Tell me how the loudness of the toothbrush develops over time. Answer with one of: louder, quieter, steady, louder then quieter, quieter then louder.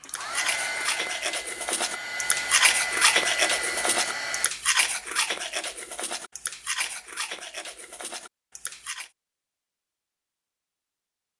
louder then quieter.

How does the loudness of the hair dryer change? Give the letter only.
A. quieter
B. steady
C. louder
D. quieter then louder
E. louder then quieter
D.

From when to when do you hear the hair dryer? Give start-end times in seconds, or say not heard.
0.0-4.5.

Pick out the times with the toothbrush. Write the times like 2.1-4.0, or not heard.
0.0-9.1.